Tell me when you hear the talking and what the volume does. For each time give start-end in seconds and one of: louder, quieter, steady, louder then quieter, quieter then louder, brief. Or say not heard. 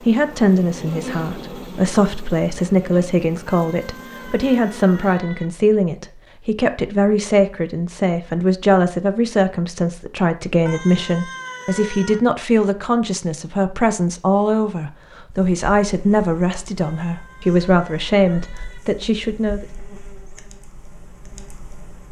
0.1-19.6 steady.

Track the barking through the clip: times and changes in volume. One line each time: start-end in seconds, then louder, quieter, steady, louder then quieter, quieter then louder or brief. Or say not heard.
not heard.